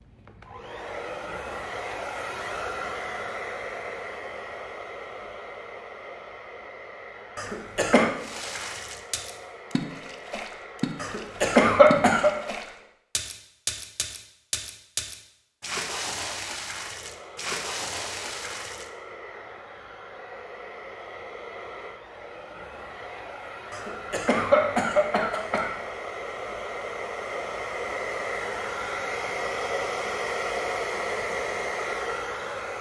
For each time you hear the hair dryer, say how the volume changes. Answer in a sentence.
You can hear the hair dryer from 0.0 to 12.9 s, getting quieter; and from 16.8 to 32.7 s, getting louder.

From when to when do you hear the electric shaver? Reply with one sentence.
The electric shaver can't be heard in this clip.